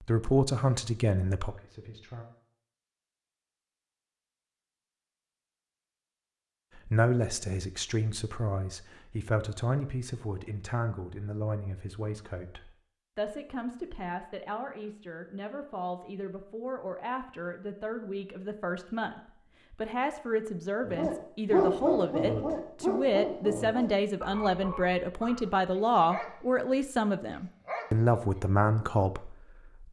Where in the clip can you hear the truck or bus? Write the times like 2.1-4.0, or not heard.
not heard.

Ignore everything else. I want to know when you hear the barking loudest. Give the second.
22 s.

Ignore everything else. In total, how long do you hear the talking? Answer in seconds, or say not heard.
25 s.